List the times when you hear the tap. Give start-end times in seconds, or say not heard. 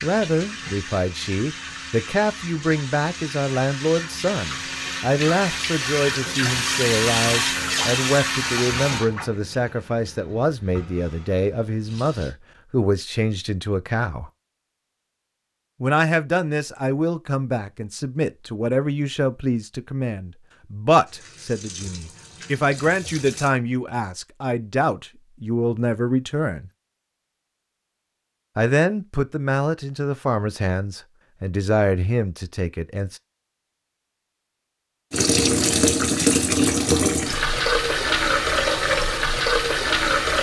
0.0-12.3, 21.1-23.5, 35.1-40.3.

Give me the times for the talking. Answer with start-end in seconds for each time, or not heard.
0.0-14.3, 15.8-26.7, 28.6-33.2.